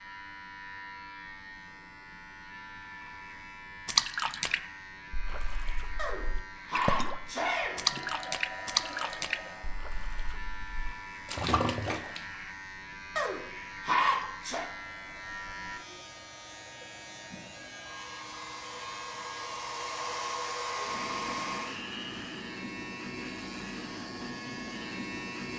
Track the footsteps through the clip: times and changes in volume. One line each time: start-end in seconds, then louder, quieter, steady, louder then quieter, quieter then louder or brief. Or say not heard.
not heard.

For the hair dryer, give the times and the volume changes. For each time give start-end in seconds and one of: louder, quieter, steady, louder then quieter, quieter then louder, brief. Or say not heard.
7.8-9.8 brief
14.8-21.9 louder.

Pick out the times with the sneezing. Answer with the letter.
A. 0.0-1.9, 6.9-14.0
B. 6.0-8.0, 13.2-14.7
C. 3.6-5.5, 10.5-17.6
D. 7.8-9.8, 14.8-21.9
B.